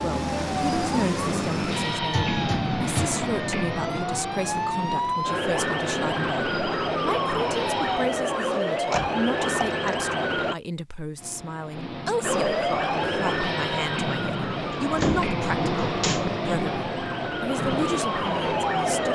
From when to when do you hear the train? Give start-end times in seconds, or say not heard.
0.2-8.1, 11.2-19.1.